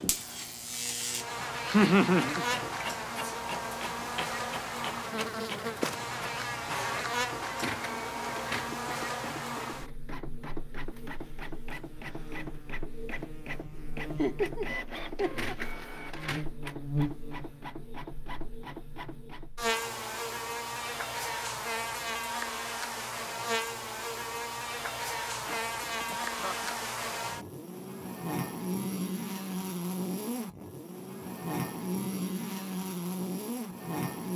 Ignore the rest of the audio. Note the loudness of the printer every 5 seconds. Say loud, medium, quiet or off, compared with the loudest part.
loud, loud, loud, loud, off, off, off.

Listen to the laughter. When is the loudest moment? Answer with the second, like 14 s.
2 s.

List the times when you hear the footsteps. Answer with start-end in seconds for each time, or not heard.
not heard.